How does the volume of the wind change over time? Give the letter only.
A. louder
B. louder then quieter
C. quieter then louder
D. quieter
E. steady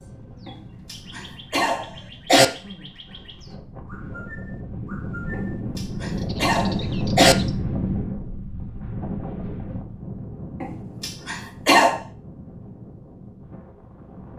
B.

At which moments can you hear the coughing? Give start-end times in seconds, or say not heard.
0.5-2.5, 5.3-7.3, 10.6-12.0.